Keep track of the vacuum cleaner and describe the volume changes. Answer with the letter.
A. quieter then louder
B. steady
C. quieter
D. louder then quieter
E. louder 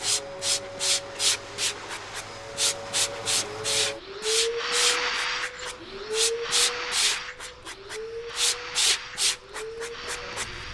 D.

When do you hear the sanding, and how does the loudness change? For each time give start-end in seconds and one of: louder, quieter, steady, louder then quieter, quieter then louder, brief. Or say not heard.
0.0-10.6 steady.